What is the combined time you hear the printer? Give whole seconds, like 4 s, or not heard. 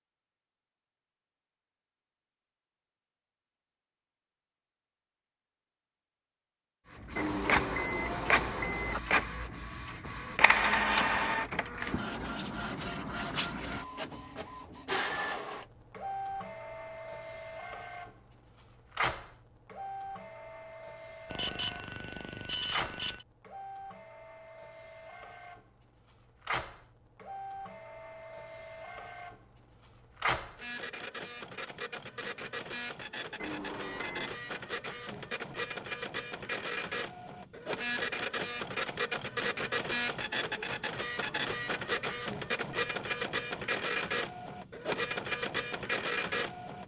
40 s.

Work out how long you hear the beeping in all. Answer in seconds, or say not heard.
5 s.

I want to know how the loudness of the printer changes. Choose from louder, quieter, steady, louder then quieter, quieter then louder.
quieter then louder.